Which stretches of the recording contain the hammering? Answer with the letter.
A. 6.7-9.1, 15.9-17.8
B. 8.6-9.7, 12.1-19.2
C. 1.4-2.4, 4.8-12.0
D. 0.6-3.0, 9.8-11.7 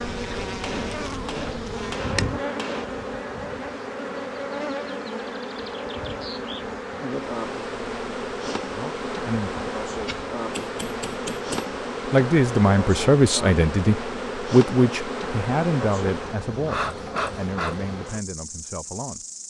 D.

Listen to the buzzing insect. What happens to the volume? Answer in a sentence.
The loudness of the buzzing insect stays about the same.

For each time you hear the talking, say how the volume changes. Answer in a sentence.
The talking can be heard briefly from 8.6 to 9.7 s; and from 12.1 to 19.2 s, getting quieter.